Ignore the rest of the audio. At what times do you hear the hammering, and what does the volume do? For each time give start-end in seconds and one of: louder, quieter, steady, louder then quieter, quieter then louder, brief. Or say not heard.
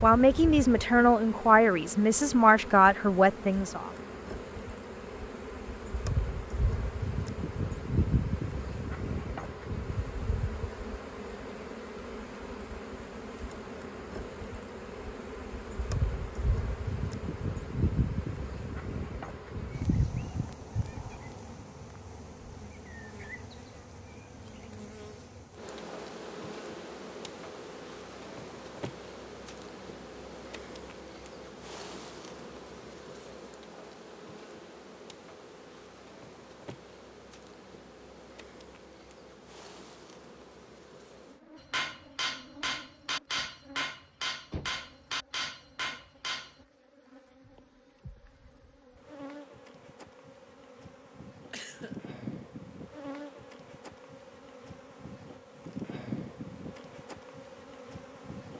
41.6-46.5 steady.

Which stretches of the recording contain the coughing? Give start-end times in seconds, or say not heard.
51.5-52.1.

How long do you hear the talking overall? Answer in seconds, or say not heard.
4 s.